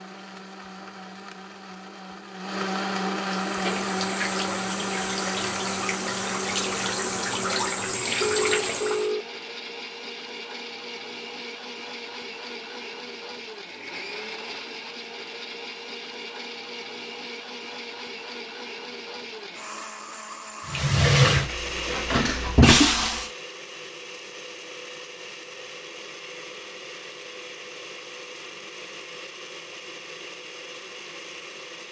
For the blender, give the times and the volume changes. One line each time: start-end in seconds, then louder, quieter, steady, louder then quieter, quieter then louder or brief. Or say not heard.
0.0-31.8 quieter.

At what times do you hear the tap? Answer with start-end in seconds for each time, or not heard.
3.2-9.1, 20.6-23.3.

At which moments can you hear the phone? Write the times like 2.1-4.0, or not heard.
8.2-9.2.